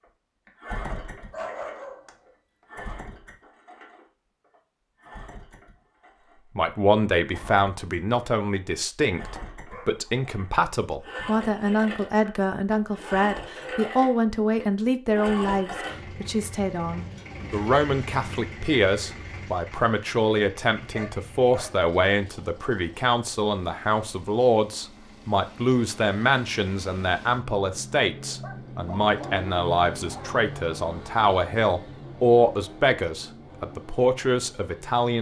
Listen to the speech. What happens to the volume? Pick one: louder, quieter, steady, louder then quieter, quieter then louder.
steady.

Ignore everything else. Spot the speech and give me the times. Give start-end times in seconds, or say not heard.
6.5-35.1.